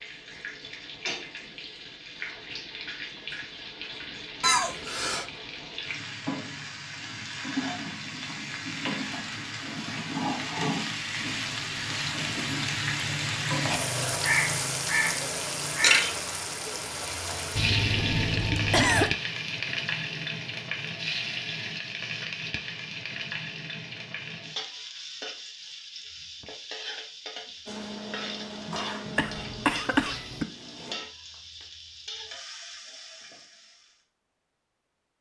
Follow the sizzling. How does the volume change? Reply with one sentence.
The volume of the sizzling goes up, then down.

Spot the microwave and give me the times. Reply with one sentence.
The microwave can be heard from 27.6 to 31.0 s.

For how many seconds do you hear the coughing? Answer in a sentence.
The coughing can be heard for 4 seconds in total.